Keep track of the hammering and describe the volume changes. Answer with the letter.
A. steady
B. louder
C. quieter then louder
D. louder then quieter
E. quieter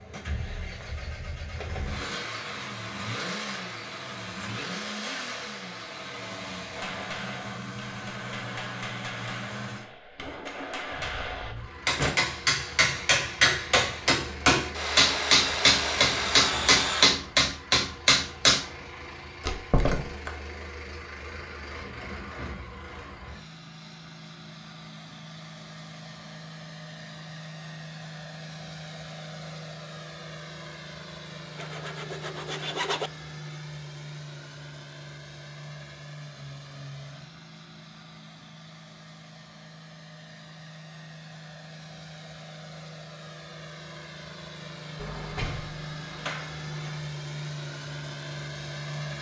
B.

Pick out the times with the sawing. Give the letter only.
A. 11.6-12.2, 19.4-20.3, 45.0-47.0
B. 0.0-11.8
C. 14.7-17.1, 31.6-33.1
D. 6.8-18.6
C.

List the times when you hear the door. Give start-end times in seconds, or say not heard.
11.6-12.2, 19.4-20.3, 45.0-47.0.